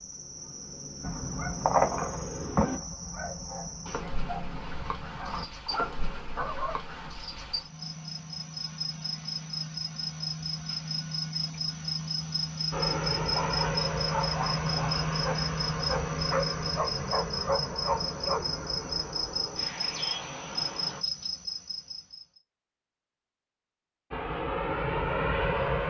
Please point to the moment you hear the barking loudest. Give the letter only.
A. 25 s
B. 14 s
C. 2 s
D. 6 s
C.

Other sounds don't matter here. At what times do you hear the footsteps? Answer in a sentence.
You can't hear the footsteps here.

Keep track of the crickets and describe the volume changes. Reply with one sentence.
The loudness of the crickets goes up.